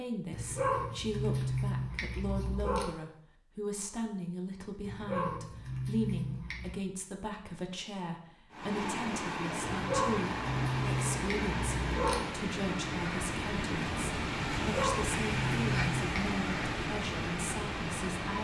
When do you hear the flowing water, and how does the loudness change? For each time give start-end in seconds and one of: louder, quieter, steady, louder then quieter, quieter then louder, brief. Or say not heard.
8.5-18.4 steady.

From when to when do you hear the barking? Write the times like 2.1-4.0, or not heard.
0.3-2.9, 4.8-6.8, 9.7-12.2, 14.6-16.2.